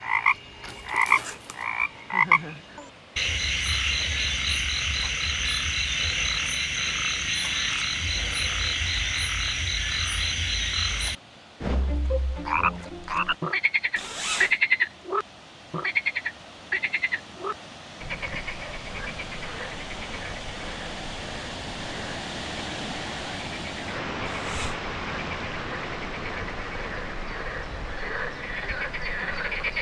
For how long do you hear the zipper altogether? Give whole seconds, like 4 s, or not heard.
2 s.